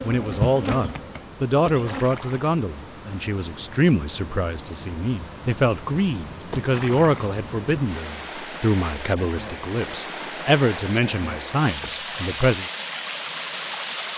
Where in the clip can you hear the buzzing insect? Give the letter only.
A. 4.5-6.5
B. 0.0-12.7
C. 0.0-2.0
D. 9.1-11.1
C.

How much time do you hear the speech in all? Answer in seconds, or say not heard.
13 s.